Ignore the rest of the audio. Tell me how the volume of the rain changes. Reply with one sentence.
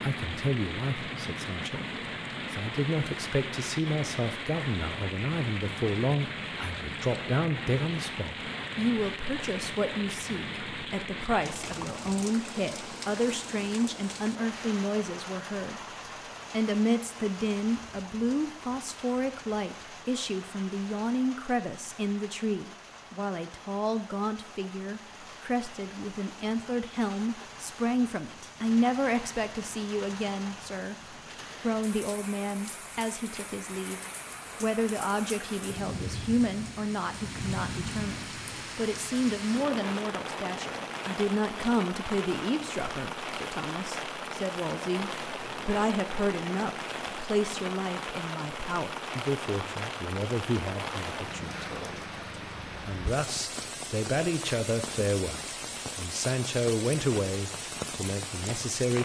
The volume of the rain goes down, then up.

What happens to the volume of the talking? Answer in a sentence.
The loudness of the talking stays about the same.